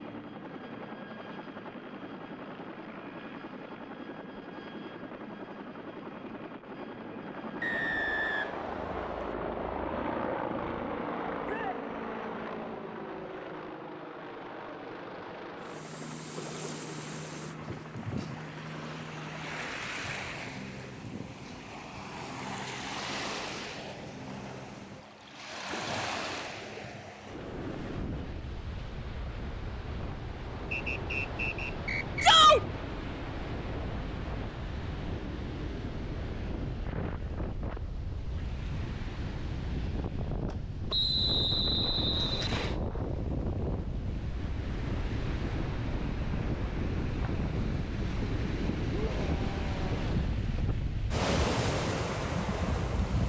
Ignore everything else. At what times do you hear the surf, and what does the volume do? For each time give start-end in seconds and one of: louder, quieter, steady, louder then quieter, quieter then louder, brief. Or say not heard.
15.6-53.2 louder.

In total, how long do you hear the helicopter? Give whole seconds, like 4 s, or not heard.
25 s.